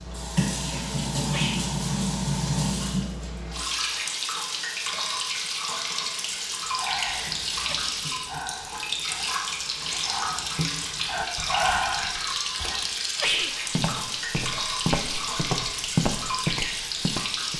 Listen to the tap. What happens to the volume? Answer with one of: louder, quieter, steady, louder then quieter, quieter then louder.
steady.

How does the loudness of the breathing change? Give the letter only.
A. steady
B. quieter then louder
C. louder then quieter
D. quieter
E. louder
E.